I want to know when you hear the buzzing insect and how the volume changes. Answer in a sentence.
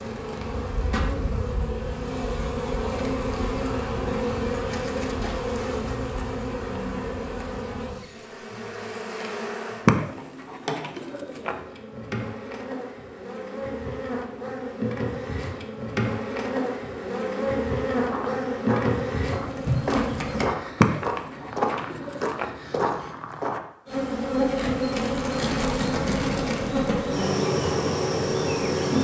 The buzzing insect can be heard from 0.0 to 20.5 s, getting quieter then louder; and from 23.9 to 28.9 s, at a steady volume.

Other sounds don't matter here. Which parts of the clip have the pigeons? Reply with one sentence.
You can hear the pigeons from 9.8 to 11.6 s and from 20.8 to 22.6 s.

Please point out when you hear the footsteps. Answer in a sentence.
You can hear the footsteps from 17.9 to 23.6 s.